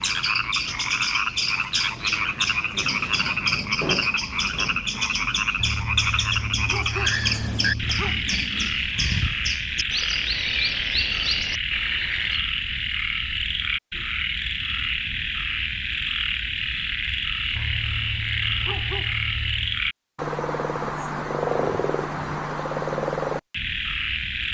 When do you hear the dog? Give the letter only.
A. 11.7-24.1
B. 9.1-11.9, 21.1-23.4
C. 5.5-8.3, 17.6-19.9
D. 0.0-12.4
C.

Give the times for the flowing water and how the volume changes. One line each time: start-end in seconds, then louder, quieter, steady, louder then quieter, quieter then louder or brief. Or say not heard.
not heard.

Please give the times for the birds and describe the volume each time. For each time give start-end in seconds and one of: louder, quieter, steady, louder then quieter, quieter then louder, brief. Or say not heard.
0.0-12.4 steady.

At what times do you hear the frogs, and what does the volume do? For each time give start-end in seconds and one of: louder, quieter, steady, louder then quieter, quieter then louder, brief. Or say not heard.
0.0-24.4 steady.